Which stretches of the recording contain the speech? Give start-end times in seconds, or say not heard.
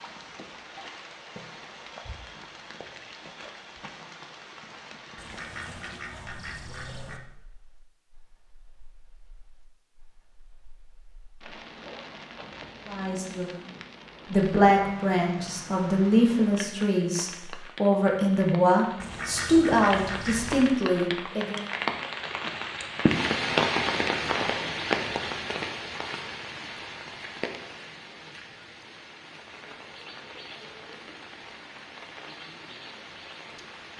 12.8-13.5, 14.3-21.6.